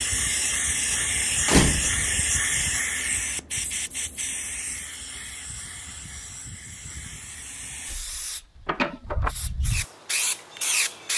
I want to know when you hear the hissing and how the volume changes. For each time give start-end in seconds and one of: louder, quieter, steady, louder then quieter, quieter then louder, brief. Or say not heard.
0.0-11.1 quieter then louder.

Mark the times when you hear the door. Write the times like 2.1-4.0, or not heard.
1.4-2.1, 8.7-9.3.